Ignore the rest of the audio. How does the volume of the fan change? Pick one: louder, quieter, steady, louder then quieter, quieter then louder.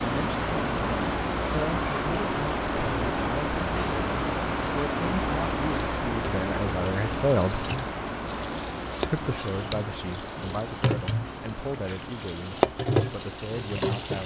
quieter.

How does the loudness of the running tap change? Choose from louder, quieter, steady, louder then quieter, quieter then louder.
louder.